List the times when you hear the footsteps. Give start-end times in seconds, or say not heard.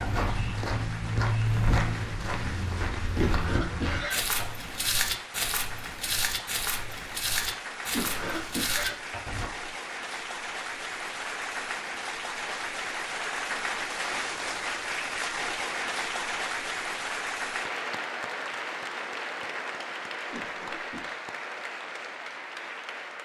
0.0-9.5.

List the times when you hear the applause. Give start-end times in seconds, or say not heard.
0.0-23.2.